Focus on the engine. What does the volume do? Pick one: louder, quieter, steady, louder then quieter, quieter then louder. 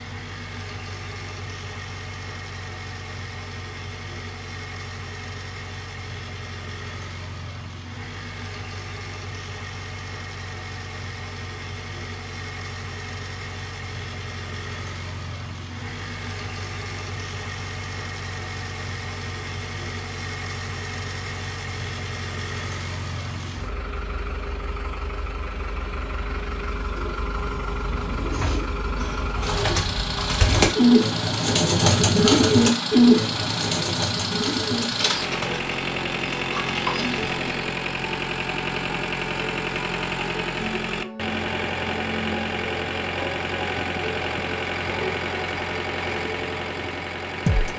louder.